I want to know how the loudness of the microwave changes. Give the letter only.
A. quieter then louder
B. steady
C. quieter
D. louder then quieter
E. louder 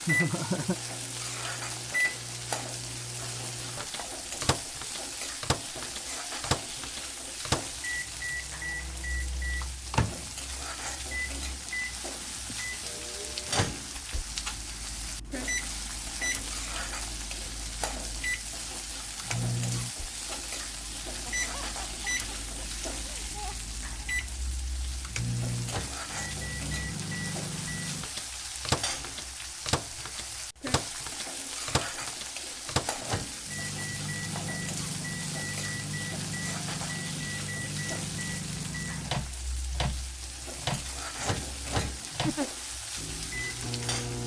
B.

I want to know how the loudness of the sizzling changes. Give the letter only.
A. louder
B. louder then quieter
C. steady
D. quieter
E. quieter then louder
C.